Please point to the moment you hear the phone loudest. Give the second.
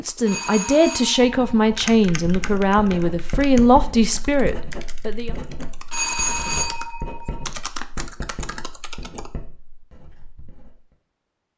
6 s.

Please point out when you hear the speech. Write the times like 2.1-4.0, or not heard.
0.0-5.3.